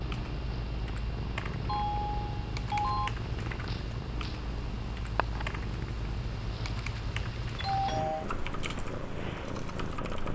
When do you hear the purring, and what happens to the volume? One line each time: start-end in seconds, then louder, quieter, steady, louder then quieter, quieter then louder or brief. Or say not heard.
0.0-10.2 steady.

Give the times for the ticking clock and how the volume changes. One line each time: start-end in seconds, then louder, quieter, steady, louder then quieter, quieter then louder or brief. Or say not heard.
not heard.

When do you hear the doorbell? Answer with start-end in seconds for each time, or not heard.
1.6-3.2, 7.5-8.2.